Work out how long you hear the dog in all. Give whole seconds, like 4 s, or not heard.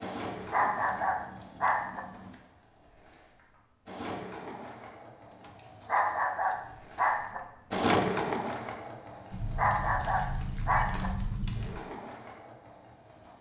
5 s.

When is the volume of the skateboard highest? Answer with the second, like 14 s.
8 s.